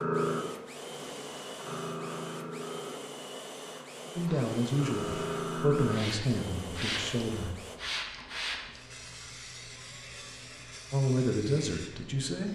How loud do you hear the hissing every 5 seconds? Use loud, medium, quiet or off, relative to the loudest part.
loud, loud, medium.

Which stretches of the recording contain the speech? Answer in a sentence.
You can hear the speech from 4.2 to 7.5 s and from 10.9 to 12.5 s.